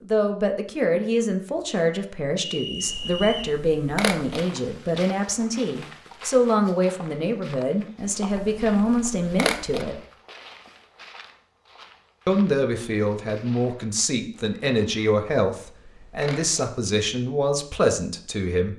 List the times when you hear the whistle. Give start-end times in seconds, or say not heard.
2.5-3.6.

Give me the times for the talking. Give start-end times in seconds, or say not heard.
0.0-10.0, 12.2-18.7.